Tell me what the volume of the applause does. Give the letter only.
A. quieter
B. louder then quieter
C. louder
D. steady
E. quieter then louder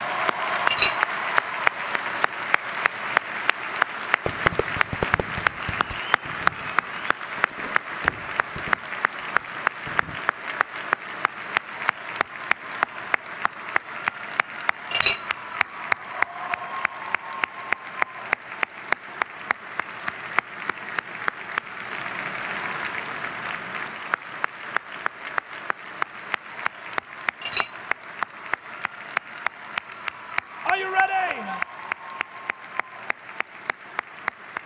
A.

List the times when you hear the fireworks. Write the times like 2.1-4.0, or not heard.
4.2-10.2.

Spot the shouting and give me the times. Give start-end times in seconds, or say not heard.
30.6-31.6.